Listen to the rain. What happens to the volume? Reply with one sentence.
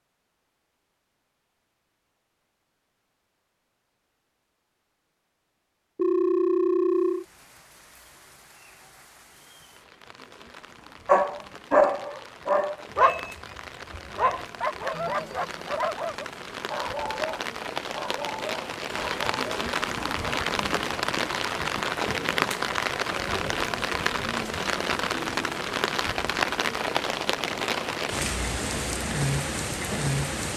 The loudness of the rain goes up.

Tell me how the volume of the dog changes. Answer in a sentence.
The loudness of the dog goes down.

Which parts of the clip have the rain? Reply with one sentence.
You can hear the rain from 6.9 to 30.5 s.